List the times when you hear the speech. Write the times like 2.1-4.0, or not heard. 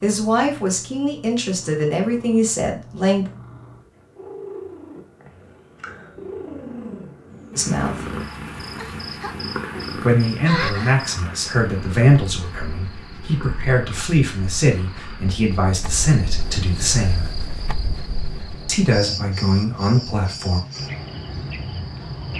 0.0-3.3, 7.5-8.1, 9.9-17.2, 18.6-20.6.